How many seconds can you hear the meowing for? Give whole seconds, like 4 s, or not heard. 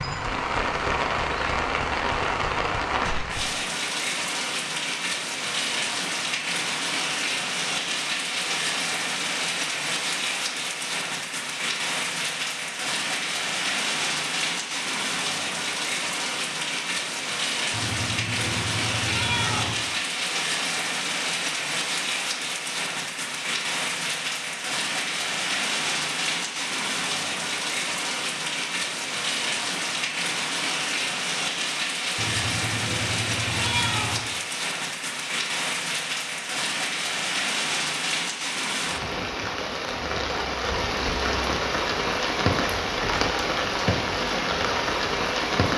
4 s.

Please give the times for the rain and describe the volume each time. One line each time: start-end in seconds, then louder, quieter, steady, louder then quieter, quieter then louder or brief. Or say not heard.
0.0-45.7 steady.